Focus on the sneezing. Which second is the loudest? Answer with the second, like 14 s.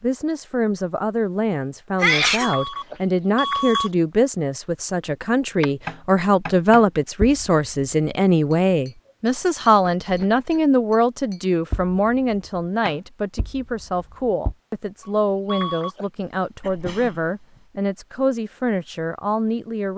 2 s.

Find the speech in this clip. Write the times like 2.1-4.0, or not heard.
0.0-19.9.